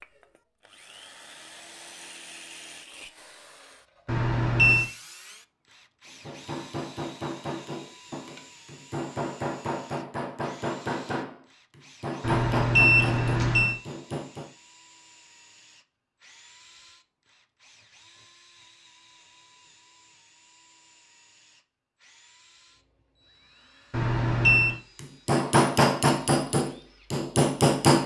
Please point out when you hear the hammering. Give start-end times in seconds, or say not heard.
6.2-14.5, 24.9-28.0.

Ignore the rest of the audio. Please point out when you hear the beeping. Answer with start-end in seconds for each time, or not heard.
4.0-4.8, 12.2-13.8, 23.9-24.8.